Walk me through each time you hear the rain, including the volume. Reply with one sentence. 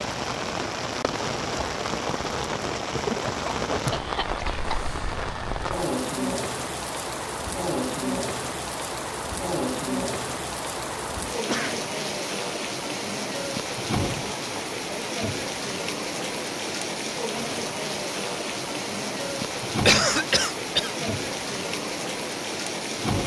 The rain can be heard from 0.0 to 23.2 s, at a steady volume.